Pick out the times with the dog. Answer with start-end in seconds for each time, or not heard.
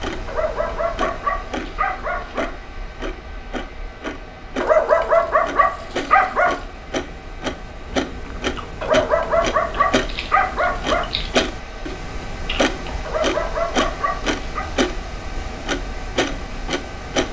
0.2-2.5, 4.6-6.7, 8.8-11.1, 13.1-14.7.